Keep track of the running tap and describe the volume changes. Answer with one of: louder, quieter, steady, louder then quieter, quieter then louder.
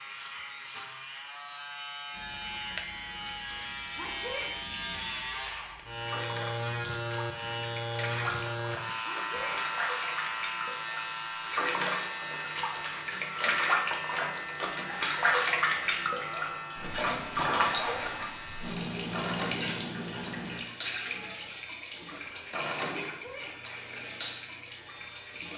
louder then quieter.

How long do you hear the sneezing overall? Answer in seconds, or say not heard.
2 s.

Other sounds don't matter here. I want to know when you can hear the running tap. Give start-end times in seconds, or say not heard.
2.1-25.5.